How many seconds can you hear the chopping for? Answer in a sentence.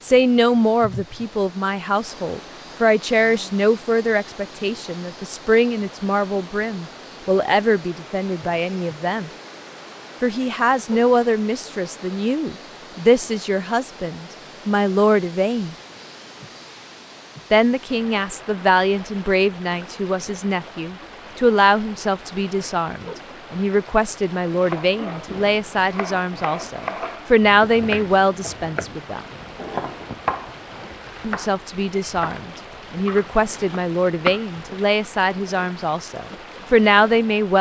You can hear the chopping for 10 seconds altogether.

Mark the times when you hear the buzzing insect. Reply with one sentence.
You can't hear the buzzing insect here.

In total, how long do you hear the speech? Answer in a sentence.
The speech can be heard for 33 seconds in total.